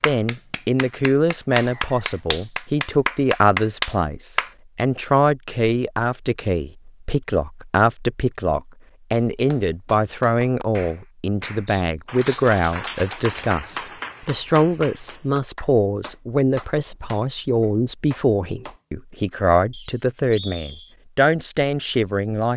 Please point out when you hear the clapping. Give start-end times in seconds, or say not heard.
0.0-4.5, 9.1-18.8.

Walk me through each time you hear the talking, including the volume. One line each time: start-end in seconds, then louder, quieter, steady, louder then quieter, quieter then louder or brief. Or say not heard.
0.1-22.5 steady.